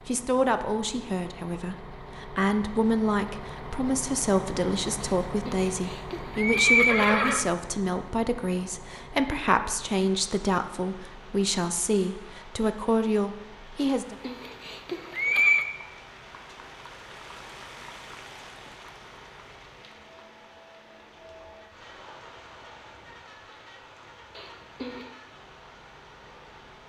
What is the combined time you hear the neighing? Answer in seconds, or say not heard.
5 s.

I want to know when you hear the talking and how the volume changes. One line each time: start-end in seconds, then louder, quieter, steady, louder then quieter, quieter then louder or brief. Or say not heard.
0.1-14.2 steady.